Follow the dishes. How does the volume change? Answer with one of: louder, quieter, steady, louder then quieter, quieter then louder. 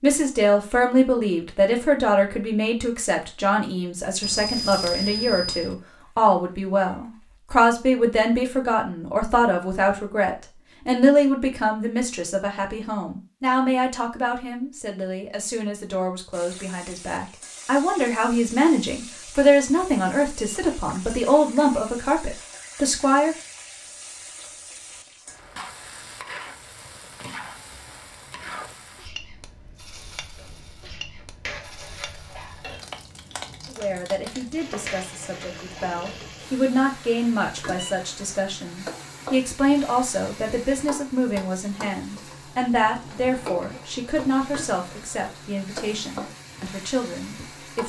quieter then louder.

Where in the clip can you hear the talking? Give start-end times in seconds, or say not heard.
0.0-23.4, 33.6-47.8.